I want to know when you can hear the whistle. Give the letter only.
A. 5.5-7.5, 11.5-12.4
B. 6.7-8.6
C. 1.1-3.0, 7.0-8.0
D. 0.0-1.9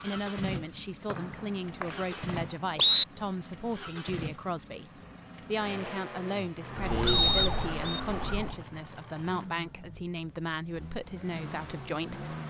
C.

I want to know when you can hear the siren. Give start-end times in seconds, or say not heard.
6.7-8.6.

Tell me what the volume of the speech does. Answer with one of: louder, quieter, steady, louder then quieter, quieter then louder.
steady.